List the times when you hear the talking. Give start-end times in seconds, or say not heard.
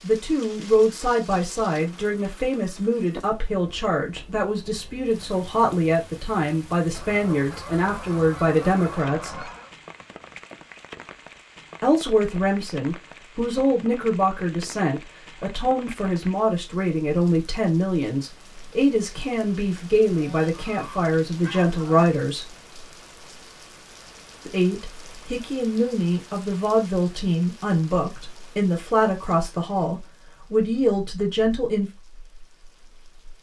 0.0-9.5, 11.8-22.6, 24.4-31.9.